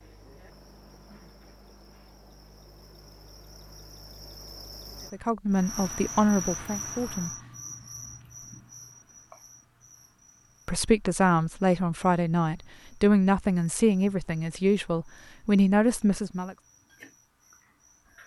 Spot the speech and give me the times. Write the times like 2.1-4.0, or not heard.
5.1-7.3, 10.7-16.6.